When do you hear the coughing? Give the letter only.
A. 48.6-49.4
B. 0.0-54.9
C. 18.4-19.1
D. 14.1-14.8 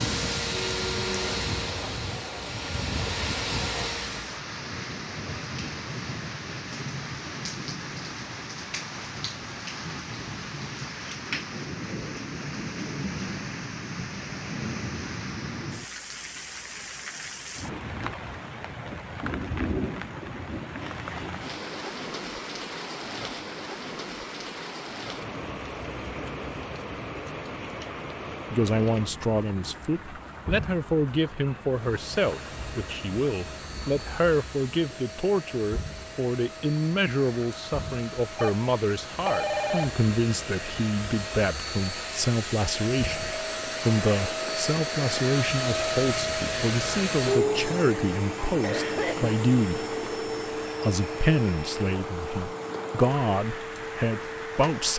A.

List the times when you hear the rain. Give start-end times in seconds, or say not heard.
0.0-54.9.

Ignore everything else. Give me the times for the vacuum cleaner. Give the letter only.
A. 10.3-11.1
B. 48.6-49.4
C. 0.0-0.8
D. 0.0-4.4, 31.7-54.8
D.